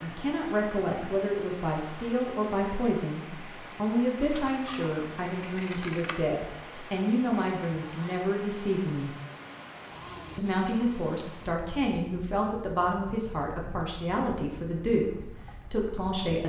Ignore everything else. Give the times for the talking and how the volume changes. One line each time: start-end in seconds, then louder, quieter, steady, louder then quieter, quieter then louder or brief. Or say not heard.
0.0-9.1 steady
10.3-16.4 steady.